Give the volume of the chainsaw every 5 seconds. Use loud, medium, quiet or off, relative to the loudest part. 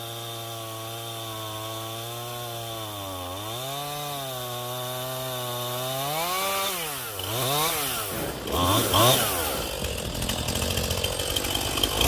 medium, loud, loud.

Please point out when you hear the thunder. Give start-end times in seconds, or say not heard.
8.1-10.1.